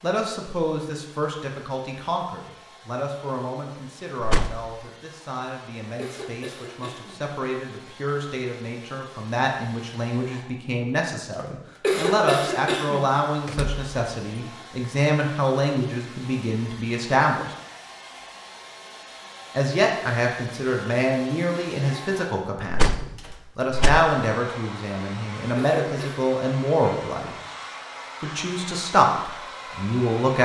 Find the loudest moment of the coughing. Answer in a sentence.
The loudest moment of the coughing is at 12 seconds.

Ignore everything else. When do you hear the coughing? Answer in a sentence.
You can hear the coughing from 6.0 to 7.2 s, from 11.8 to 13.1 s and from 25.6 to 26.2 s.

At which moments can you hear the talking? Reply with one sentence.
The talking can be heard from 0.0 to 17.5 s, from 19.5 to 27.4 s and from 28.2 to 30.3 s.